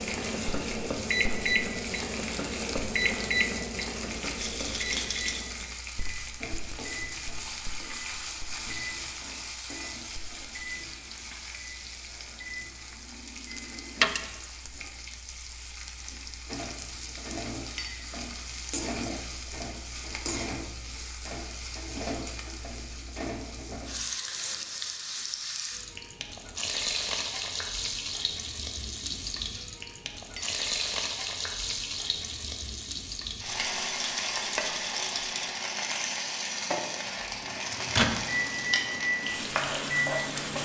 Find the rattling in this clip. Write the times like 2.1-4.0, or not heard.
4.3-5.5, 13.9-14.3, 33.5-35.6.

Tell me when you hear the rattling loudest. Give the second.
14 s.